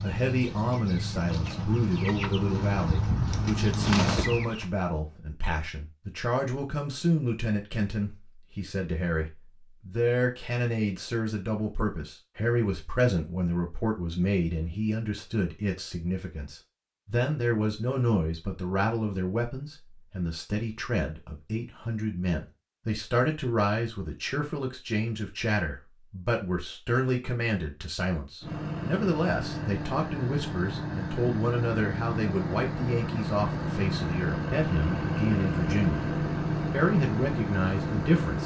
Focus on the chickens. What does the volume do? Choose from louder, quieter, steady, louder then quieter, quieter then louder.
louder.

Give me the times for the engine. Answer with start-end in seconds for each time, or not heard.
28.4-38.4.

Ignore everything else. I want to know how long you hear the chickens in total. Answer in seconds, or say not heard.
5 s.